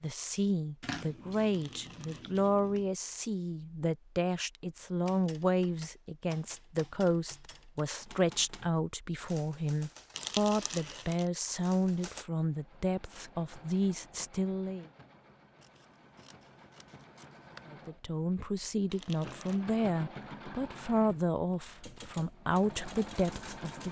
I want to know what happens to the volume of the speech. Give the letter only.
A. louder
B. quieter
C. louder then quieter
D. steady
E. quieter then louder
D.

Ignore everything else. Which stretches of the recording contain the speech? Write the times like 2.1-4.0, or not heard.
0.0-14.8, 17.7-23.8.